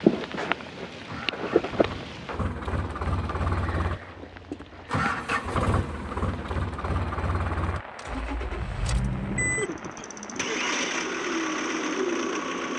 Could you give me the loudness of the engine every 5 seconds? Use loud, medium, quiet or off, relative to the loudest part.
medium, loud, loud.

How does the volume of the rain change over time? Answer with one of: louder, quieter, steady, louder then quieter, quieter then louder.
quieter.